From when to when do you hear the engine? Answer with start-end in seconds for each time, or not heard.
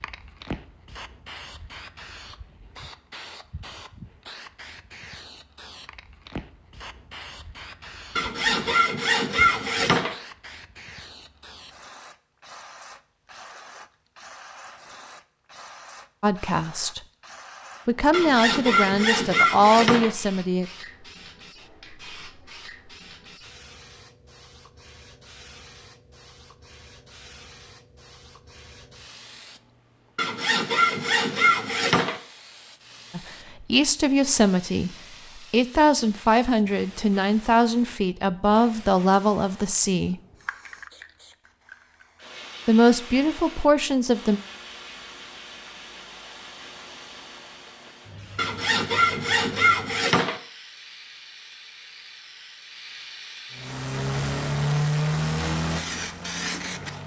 53.5-57.0.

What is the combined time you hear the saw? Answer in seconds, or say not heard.
8 s.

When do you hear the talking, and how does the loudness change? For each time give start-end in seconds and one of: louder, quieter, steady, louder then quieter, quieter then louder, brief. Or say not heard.
16.2-17.0 brief
17.9-20.6 brief
33.1-40.1 steady
42.6-44.4 brief.